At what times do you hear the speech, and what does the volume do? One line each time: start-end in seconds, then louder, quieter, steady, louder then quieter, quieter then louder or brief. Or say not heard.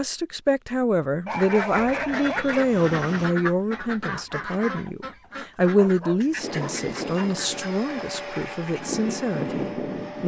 0.0-10.2 quieter.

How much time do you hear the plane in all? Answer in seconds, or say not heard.
4 s.